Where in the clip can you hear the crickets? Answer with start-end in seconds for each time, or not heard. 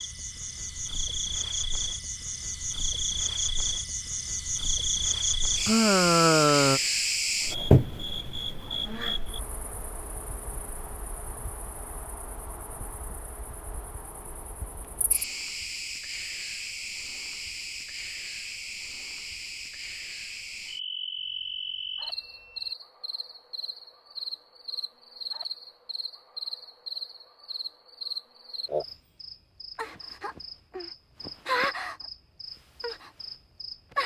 0.0-34.0.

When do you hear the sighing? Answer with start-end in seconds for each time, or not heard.
5.7-6.8.